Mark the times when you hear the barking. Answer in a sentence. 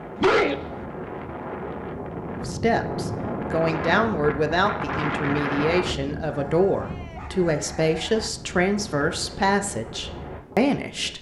You can hear the barking from 0.1 to 0.8 s and from 6.2 to 8.3 s.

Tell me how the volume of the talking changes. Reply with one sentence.
The loudness of the talking stays about the same.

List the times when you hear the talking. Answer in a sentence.
The talking can be heard from 2.5 to 11.1 s.